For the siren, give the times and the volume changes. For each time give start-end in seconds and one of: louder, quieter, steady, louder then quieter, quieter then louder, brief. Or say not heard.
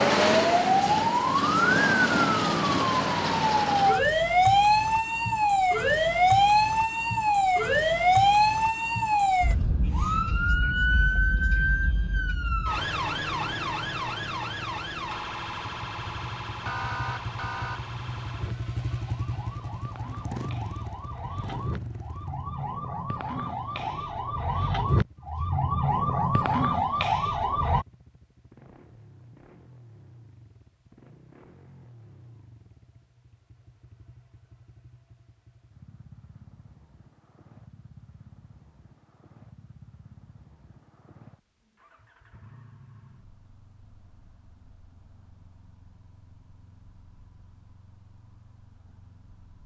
0.0-27.9 quieter then louder.